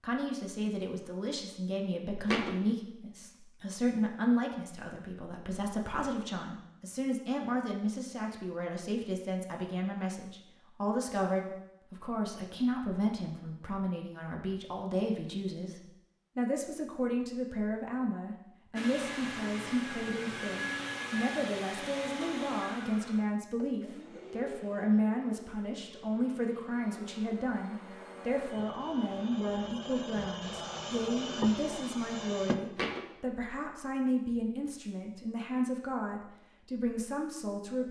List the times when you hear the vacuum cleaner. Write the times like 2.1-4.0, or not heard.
18.8-32.5.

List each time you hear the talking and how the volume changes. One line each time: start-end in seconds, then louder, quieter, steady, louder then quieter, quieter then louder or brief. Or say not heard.
0.0-37.8 steady.